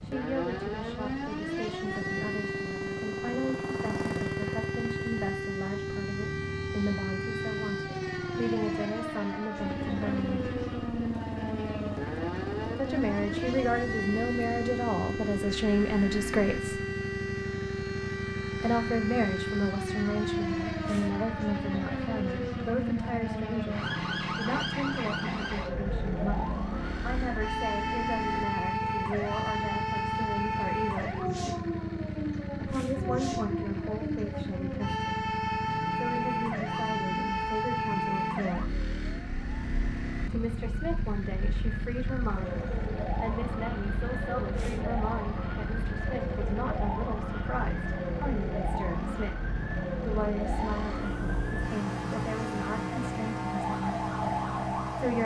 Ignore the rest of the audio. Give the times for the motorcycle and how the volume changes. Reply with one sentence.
You can hear the motorcycle from 0.0 to 55.2 s, at a steady volume.